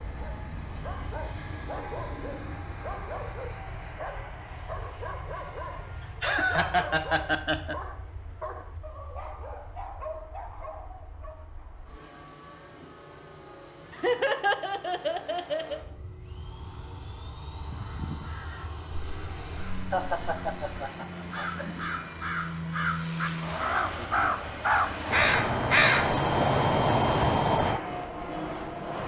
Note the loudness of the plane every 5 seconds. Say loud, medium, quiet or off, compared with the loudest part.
medium, quiet, quiet, medium, loud, loud.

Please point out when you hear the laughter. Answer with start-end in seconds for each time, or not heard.
6.0-7.8, 13.9-15.8, 19.9-22.0.